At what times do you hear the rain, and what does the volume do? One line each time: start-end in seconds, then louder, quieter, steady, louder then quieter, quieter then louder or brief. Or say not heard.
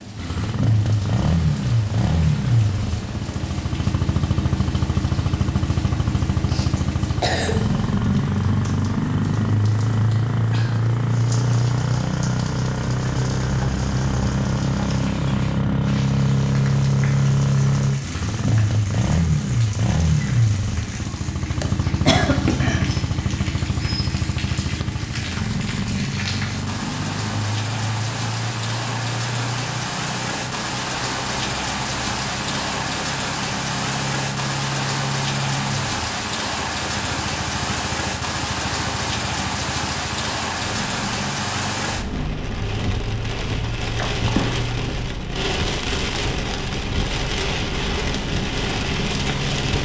0.0-49.8 louder.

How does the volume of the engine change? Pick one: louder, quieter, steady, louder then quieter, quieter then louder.
quieter.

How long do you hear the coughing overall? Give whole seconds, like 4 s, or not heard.
3 s.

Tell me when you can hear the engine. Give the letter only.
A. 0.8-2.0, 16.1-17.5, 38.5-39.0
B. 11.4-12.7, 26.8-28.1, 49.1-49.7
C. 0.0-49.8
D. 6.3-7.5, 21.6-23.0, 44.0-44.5
C.